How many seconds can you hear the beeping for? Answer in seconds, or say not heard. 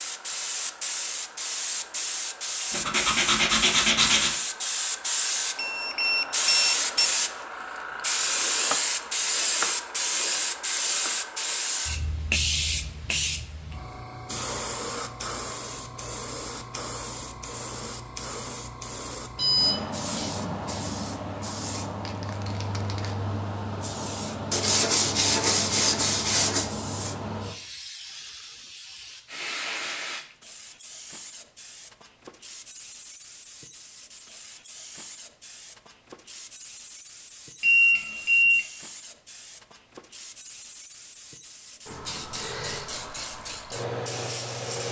3 s.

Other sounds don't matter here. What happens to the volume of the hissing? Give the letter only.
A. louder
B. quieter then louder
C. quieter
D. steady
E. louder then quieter
C.